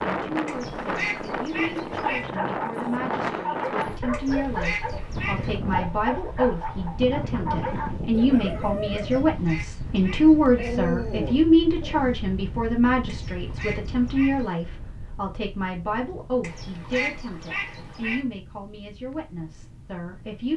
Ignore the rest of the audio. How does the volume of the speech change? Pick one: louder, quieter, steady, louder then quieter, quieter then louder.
louder then quieter.